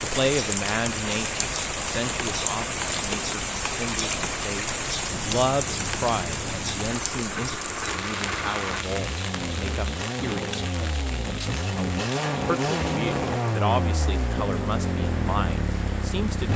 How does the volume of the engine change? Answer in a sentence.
The volume of the engine goes up.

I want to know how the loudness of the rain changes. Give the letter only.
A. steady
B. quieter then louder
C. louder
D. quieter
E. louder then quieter
D.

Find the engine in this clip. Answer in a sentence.
The engine can be heard from 0.2 to 16.5 s.